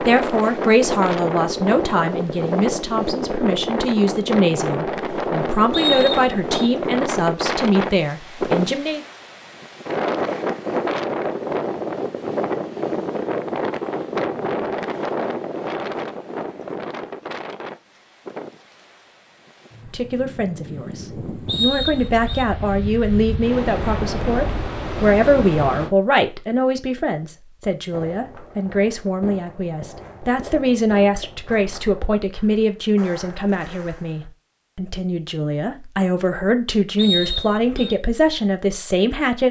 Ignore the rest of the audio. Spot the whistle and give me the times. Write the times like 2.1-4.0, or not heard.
5.7-6.7, 21.4-22.4, 37.0-38.0.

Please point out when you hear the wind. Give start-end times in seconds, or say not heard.
0.0-25.9.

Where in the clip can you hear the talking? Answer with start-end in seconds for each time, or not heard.
0.0-9.0, 19.9-39.4.